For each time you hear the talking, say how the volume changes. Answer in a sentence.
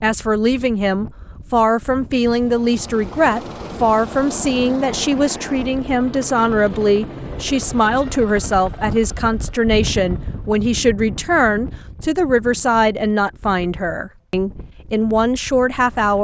The talking can be heard from 0.0 to 16.1 s, at a steady volume.